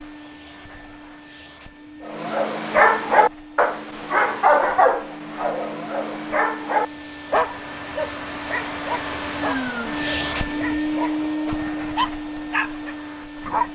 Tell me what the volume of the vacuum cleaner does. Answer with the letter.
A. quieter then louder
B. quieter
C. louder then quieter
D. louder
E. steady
D.